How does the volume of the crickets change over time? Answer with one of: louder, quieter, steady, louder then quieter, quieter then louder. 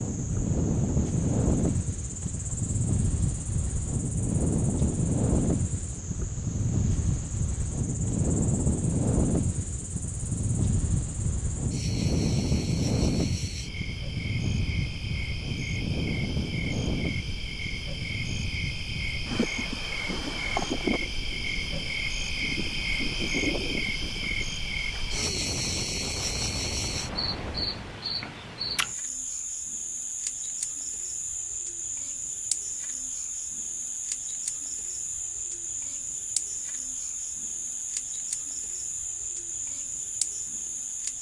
louder.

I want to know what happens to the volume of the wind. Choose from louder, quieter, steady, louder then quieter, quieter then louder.
quieter.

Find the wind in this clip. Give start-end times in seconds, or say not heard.
0.0-28.0.